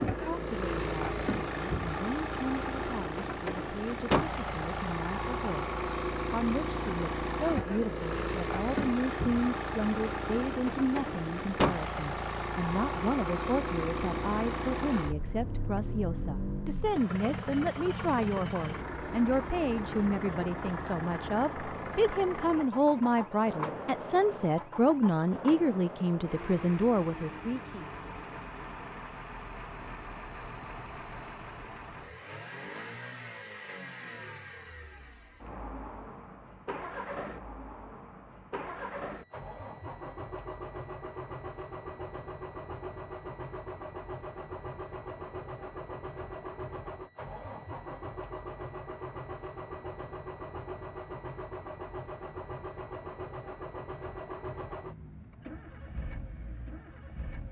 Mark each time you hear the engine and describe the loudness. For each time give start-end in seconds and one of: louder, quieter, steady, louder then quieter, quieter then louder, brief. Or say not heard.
0.0-57.4 quieter.